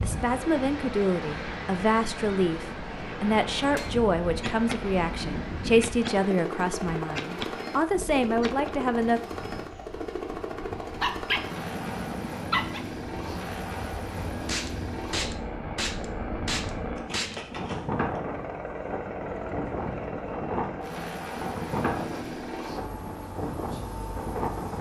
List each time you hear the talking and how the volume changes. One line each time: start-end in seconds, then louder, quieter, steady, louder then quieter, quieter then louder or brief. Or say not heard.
0.0-9.2 steady.